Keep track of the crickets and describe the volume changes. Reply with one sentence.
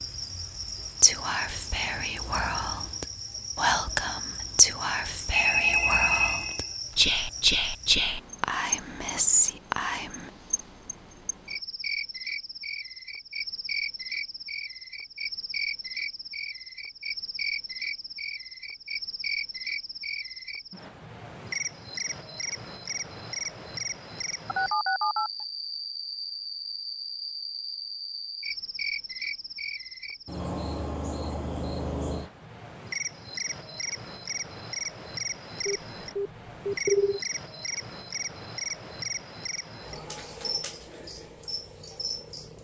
The volume of the crickets stays about the same.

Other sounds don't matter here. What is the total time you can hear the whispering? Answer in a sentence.
You can hear the whispering for 9 seconds altogether.